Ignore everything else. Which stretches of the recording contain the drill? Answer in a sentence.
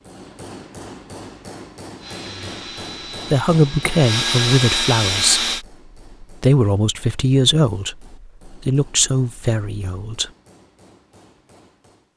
The drill can be heard from 2.0 to 5.7 s.